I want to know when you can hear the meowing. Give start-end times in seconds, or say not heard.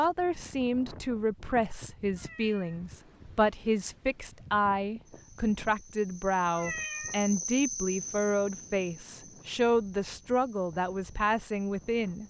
2.1-2.8, 6.5-7.2.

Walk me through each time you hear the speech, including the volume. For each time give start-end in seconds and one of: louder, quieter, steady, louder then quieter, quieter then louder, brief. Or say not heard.
0.0-12.2 steady.